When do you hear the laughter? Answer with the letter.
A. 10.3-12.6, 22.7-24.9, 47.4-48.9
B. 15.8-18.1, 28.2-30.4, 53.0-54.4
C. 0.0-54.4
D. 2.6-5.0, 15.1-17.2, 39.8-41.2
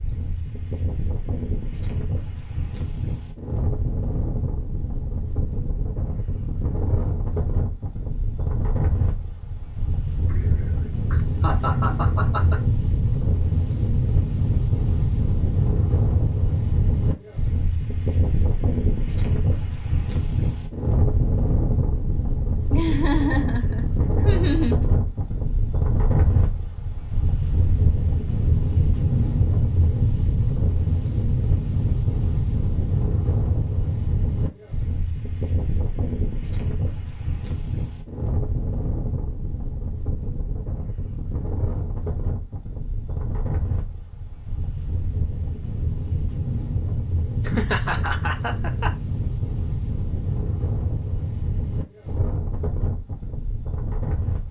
A.